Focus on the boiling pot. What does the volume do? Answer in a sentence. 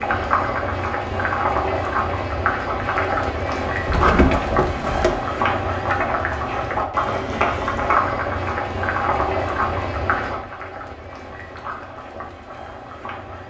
The loudness of the boiling pot goes down.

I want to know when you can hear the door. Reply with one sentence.
You can hear the door from 3.9 to 5.2 s.